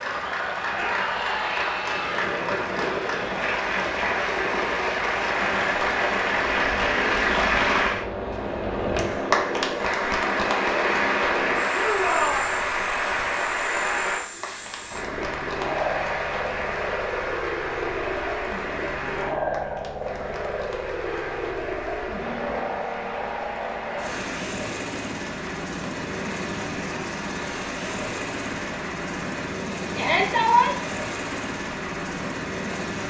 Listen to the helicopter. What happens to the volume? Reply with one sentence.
The loudness of the helicopter stays about the same.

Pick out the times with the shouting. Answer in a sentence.
You can hear the shouting from 0.8 to 2.4 s, from 11.7 to 12.4 s and from 29.9 to 30.7 s.